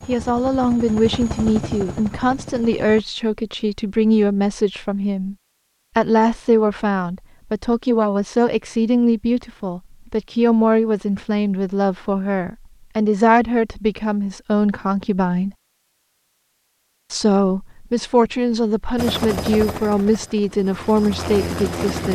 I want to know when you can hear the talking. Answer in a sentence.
The talking can be heard from 0.1 to 5.3 s, from 6.0 to 15.6 s and from 17.1 to 22.0 s.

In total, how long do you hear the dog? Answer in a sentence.
You can't hear the dog here.